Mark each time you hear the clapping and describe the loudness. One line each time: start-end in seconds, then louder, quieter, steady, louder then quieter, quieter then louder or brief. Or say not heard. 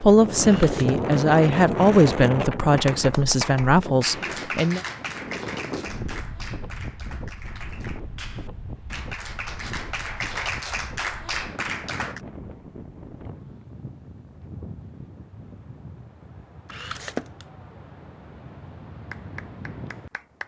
2.7-12.2 quieter then louder
19.1-20.4 brief.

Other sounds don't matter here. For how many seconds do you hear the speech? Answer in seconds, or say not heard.
5 s.